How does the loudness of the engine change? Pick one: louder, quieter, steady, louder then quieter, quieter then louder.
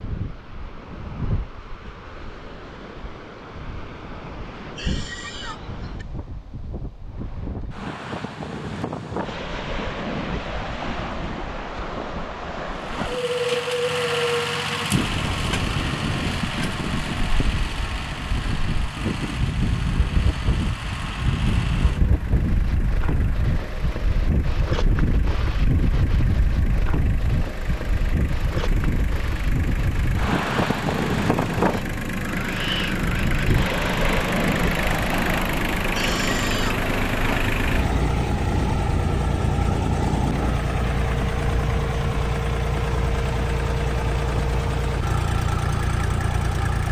quieter then louder.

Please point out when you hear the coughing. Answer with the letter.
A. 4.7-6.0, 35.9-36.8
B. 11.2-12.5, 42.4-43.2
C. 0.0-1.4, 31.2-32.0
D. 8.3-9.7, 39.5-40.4
A.